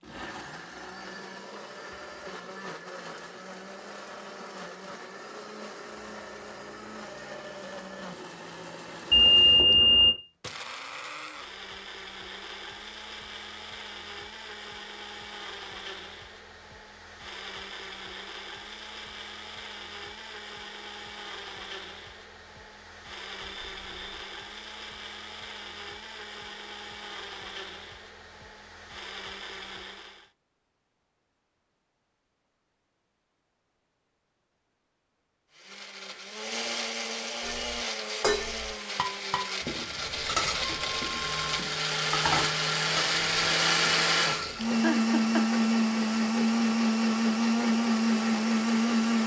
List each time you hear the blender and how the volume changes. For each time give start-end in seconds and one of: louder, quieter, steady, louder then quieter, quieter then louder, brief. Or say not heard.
0.0-30.3 steady
35.5-49.2 louder.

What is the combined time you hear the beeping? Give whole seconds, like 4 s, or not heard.
4 s.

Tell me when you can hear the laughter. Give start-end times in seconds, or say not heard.
44.6-45.6.